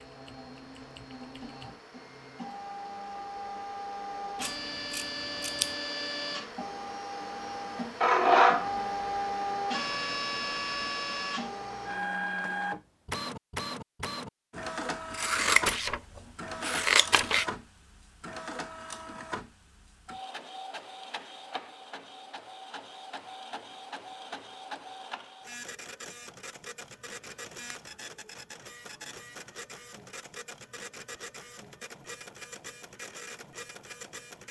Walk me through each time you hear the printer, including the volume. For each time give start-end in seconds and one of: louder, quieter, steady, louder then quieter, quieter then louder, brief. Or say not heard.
0.0-34.4 louder then quieter.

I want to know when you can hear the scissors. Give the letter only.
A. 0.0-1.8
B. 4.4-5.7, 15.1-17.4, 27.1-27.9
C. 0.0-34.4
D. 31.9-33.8
B.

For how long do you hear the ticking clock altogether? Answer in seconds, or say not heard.
not heard.